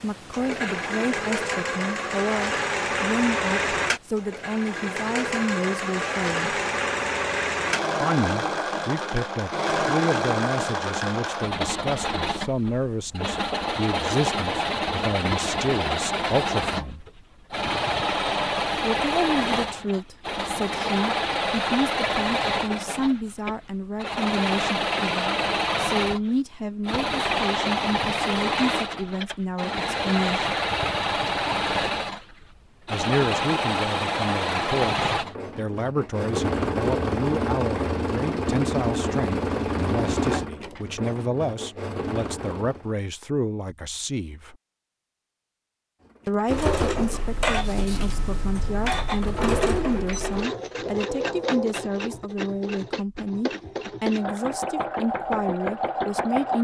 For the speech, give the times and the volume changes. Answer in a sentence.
You can hear the speech from 0.0 to 6.6 s, at a steady volume; from 8.0 to 17.1 s, at a steady volume; from 18.8 to 30.5 s, at a steady volume; from 32.9 to 44.5 s, at a steady volume; and from 46.2 to 56.5 s, at a steady volume.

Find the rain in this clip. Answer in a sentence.
You can't hear the rain here.